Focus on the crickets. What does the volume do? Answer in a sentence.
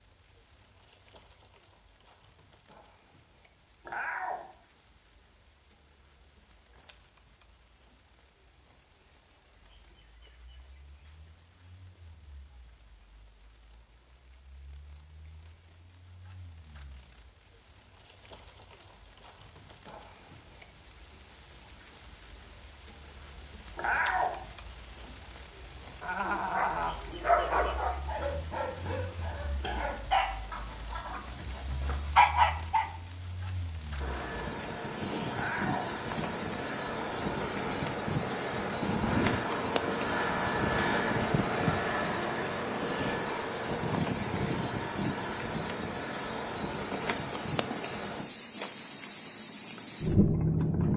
The volume of the crickets goes up.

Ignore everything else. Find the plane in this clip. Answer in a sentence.
You can hear the plane from 34.0 to 48.2 s.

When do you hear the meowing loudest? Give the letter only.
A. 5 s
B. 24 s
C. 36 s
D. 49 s
B.